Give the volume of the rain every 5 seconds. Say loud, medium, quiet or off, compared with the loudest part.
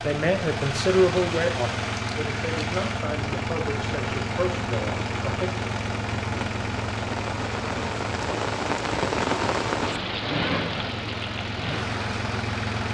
medium, loud, loud.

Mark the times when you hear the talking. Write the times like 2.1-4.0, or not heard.
0.0-5.5.